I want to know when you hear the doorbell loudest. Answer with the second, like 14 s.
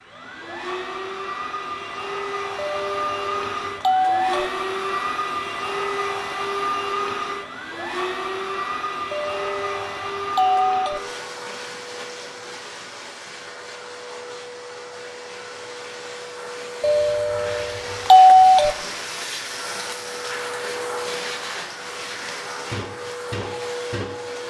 18 s.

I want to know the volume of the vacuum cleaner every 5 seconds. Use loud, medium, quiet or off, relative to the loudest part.
loud, loud, medium, medium, loud.